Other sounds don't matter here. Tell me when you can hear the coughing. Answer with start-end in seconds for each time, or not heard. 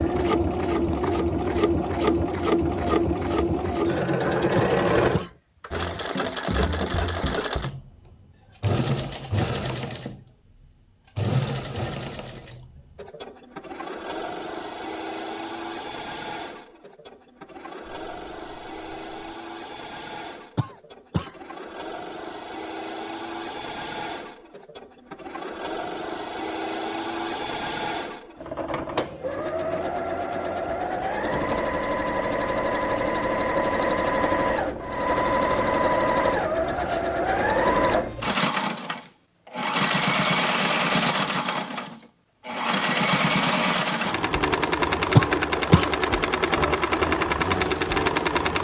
4.5-5.3, 20.6-21.4, 45.1-45.9.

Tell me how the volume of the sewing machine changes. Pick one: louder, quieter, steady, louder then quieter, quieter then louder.
quieter then louder.